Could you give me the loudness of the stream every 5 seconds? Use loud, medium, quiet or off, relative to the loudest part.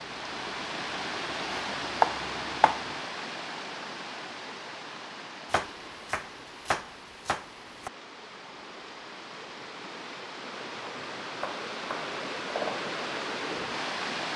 loud, medium, loud.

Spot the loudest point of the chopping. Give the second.
2 s.